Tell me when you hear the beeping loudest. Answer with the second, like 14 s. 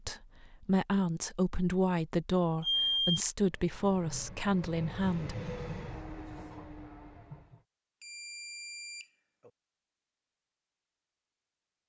3 s.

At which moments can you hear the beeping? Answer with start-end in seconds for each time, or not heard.
2.6-3.2, 8.0-9.5.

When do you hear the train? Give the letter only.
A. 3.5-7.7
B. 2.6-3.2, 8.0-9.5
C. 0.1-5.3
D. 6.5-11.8
A.